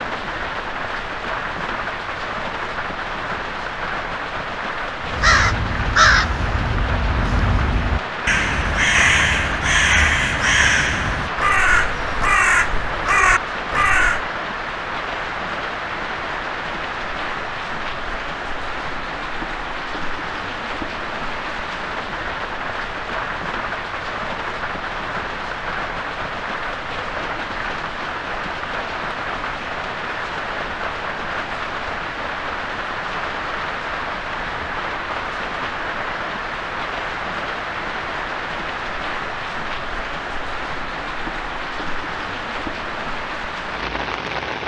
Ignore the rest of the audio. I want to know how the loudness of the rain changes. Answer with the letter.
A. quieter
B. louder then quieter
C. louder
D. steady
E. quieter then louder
D.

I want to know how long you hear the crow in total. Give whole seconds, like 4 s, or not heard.
9 s.